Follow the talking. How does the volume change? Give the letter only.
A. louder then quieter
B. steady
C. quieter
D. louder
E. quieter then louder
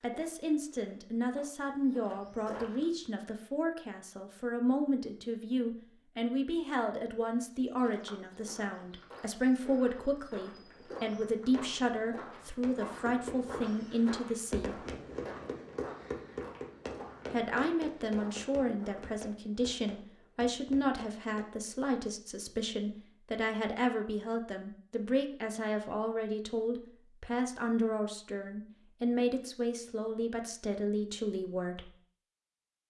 B.